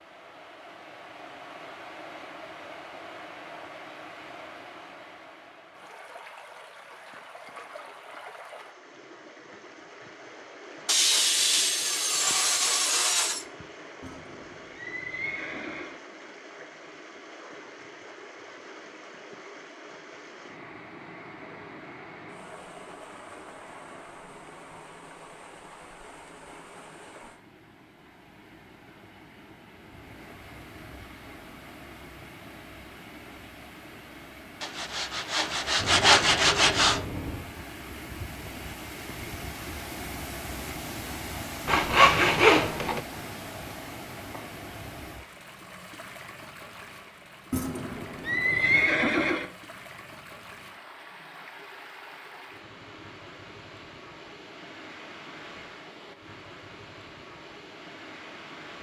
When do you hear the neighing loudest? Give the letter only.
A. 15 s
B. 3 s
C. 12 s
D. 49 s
D.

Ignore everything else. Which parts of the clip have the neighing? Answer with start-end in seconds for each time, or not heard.
14.0-15.9, 47.5-49.5.